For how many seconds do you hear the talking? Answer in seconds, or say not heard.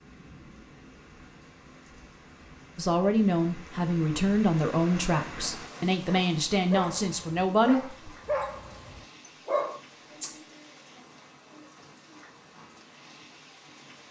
5 s.